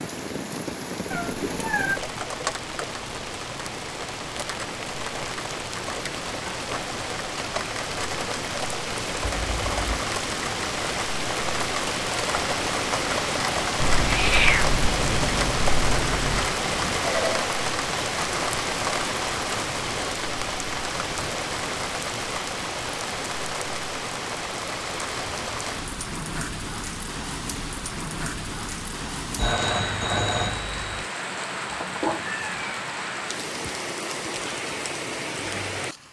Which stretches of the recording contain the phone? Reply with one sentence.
The phone can be heard from 9.2 to 10.1 s, from 16.6 to 17.4 s and from 29.4 to 31.1 s.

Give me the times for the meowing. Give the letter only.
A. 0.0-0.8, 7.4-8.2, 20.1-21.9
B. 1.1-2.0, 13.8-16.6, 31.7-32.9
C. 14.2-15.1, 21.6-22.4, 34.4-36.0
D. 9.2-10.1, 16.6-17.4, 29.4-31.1
B.